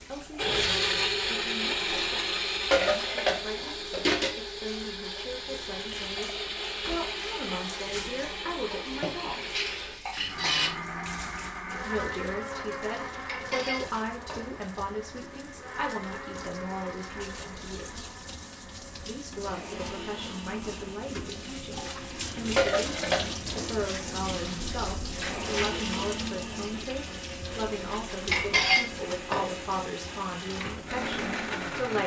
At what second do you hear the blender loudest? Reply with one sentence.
The volume of the blender peaks at 1 second.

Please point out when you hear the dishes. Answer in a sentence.
You can hear the dishes from 1.9 to 4.3 s, from 8.7 to 10.7 s, from 13.2 to 14.6 s, from 21.7 to 23.6 s and from 28.3 to 29.6 s.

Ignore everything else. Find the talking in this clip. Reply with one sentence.
The talking can be heard from 0.0 to 9.5 s, from 11.8 to 18.1 s and from 19.1 to 32.0 s.